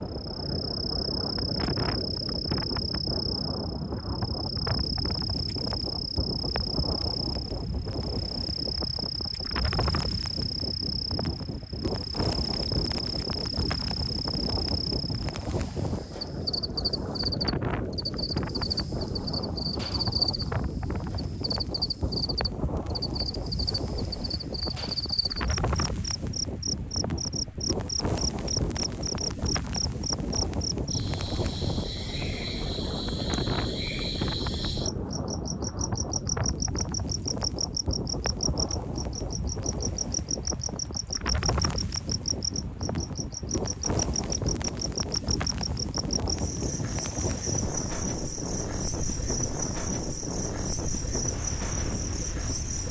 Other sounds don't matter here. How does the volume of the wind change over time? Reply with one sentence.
The loudness of the wind stays about the same.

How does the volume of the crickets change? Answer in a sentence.
The loudness of the crickets stays about the same.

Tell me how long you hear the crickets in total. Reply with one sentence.
The crickets can be heard for 53 seconds in total.